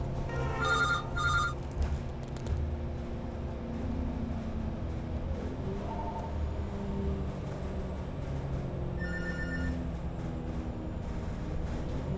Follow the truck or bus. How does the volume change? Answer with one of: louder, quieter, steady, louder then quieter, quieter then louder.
steady.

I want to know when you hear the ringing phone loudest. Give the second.
1 s.